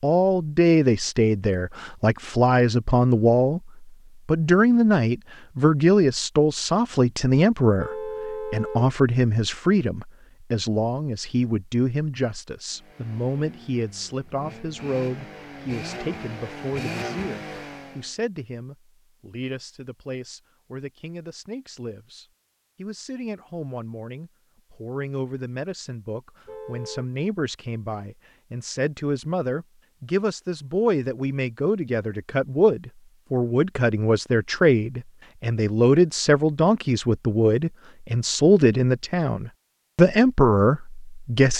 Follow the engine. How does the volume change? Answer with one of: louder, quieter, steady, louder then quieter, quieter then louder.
louder.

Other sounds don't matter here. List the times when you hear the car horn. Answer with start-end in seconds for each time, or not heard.
7.8-8.9, 26.4-27.1.